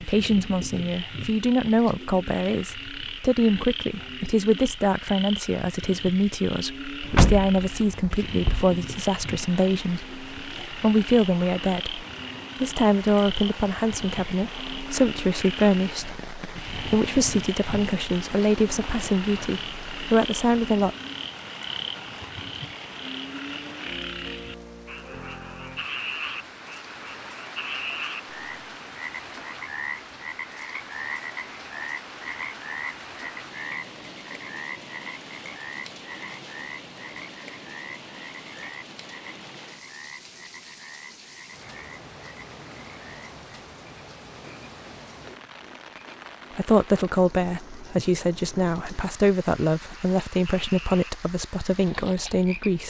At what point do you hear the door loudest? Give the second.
7 s.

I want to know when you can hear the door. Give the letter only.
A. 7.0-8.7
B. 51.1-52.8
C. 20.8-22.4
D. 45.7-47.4
A.